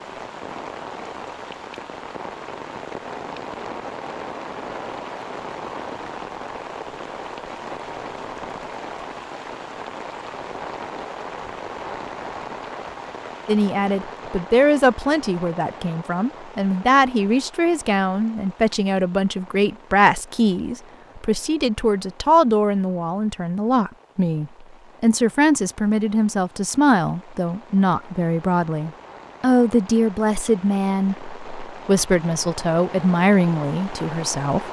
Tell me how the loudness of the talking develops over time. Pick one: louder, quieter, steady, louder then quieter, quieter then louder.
steady.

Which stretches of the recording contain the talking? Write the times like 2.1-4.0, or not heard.
13.4-34.6.